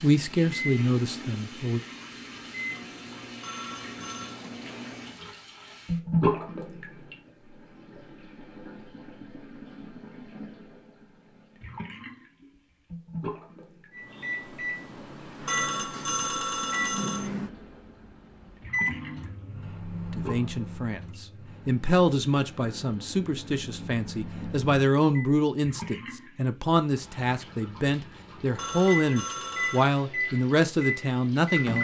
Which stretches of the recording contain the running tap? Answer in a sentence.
You can hear the running tap from 0.0 to 31.7 s.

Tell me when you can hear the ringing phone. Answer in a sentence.
You can hear the ringing phone from 3.4 to 4.3 s, from 15.4 to 17.3 s and from 28.6 to 29.9 s.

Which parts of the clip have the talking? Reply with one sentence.
The talking can be heard from 0.0 to 1.8 s and from 20.1 to 31.7 s.